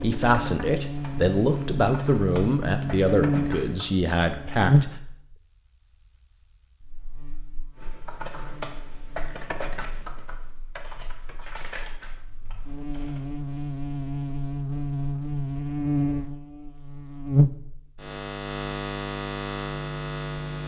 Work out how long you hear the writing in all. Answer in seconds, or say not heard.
not heard.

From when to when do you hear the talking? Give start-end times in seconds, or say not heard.
0.0-5.0.